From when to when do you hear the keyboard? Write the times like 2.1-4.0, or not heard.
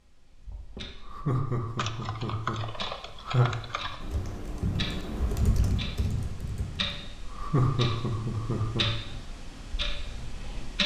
1.8-7.0.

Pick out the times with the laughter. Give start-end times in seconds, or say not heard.
0.9-3.5, 7.2-8.9.